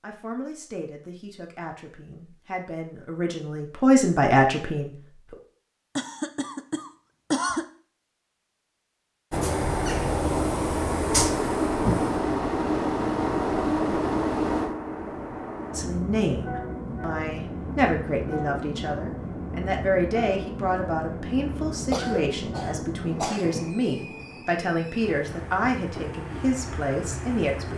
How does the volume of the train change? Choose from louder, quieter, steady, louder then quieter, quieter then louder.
quieter.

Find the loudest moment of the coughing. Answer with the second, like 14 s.
7 s.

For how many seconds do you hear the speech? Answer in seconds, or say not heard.
17 s.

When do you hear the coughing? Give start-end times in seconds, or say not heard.
6.0-7.7, 21.8-23.6.